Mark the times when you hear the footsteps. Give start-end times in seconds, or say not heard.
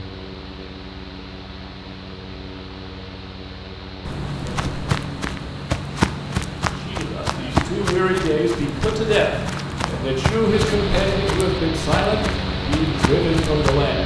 4.0-13.9.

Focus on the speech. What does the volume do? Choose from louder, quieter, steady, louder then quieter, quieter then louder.
steady.